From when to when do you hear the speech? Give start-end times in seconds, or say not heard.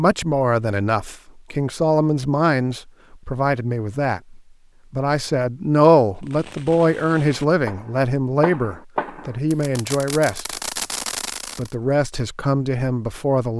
0.0-10.6, 11.6-13.5.